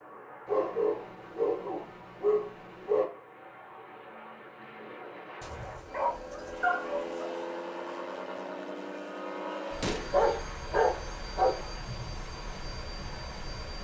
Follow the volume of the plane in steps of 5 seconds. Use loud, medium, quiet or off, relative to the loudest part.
medium, loud, loud.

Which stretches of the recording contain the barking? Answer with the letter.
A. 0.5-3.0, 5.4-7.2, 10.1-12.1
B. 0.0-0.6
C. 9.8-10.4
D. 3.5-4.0
A.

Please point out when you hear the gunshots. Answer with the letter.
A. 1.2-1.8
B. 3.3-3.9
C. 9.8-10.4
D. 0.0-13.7
C.